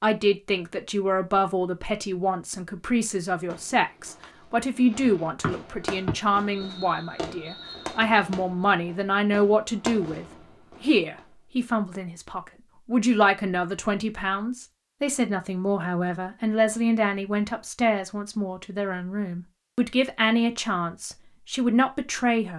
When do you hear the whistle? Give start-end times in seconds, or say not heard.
5.4-8.0.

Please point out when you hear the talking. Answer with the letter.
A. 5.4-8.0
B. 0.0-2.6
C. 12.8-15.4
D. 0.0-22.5
D.